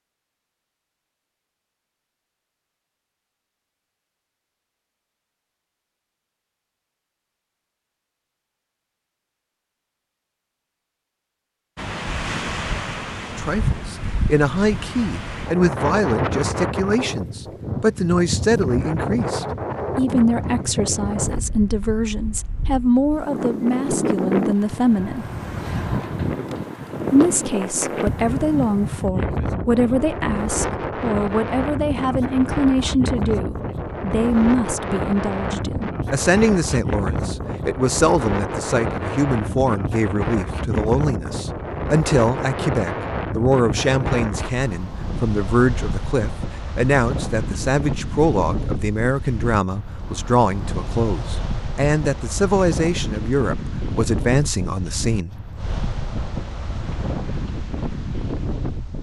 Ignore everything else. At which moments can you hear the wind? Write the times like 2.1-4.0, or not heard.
11.8-58.9.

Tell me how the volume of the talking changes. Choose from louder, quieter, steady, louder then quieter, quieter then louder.
steady.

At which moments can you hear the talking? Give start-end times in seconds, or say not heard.
13.3-25.2, 27.1-55.4.